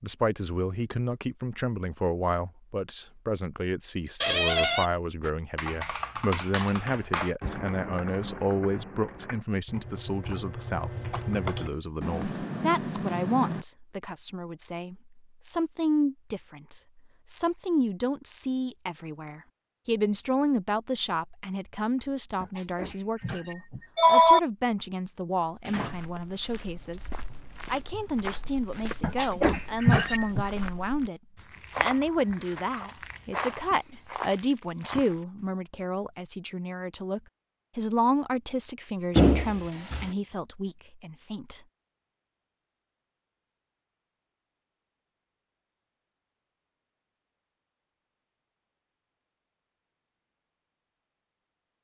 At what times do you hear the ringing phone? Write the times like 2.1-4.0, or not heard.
22.4-24.4, 29.0-30.4.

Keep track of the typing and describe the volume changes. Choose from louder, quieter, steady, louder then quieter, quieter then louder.
quieter then louder.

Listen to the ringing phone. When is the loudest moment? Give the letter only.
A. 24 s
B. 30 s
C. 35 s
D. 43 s
A.